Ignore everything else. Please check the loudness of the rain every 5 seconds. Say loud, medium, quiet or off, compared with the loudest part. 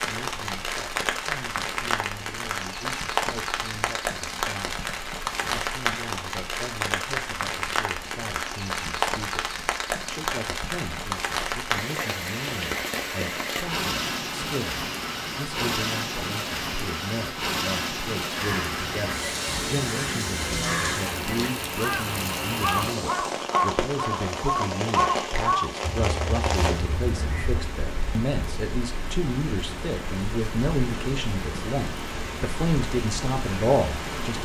loud, loud, loud, loud, loud, loud, medium.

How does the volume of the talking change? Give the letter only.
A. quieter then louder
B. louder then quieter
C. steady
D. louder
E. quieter
D.